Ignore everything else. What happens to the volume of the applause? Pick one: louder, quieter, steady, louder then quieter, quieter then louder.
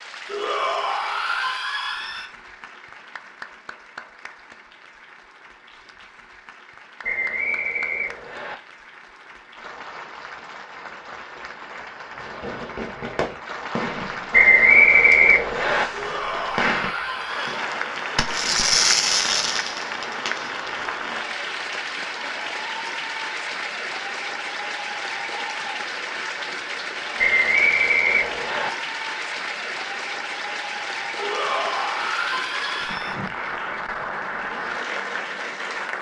louder.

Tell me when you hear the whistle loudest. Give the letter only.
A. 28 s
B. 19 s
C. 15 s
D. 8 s
C.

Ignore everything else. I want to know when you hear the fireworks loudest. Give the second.
19 s.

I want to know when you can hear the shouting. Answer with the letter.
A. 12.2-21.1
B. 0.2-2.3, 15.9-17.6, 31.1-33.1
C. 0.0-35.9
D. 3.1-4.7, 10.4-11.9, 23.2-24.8
B.